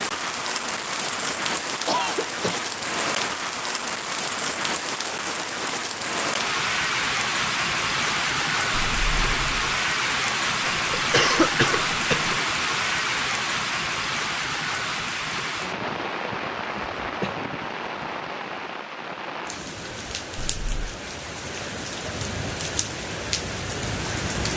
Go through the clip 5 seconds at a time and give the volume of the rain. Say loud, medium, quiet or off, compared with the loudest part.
loud, loud, loud, medium, medium.